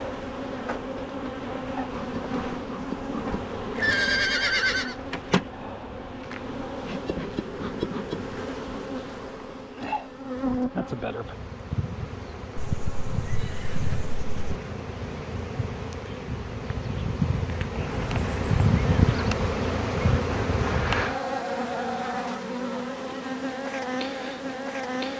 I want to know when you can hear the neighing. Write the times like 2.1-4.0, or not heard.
3.8-5.0, 12.6-14.6, 17.8-18.6.